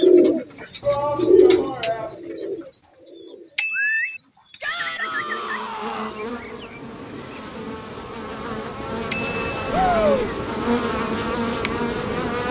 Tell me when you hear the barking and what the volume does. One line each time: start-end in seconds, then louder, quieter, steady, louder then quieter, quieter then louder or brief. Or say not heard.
not heard.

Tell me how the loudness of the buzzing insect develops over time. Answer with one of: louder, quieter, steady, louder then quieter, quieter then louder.
louder.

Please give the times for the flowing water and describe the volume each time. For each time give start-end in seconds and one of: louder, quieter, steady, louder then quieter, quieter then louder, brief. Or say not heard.
not heard.